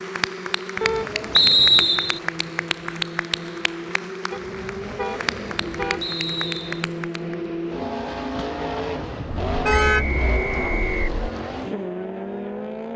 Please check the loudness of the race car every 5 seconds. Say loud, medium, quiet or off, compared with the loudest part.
medium, loud, loud.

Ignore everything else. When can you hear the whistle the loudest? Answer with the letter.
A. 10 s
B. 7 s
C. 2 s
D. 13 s
C.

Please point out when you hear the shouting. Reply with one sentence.
The shouting can't be heard in this clip.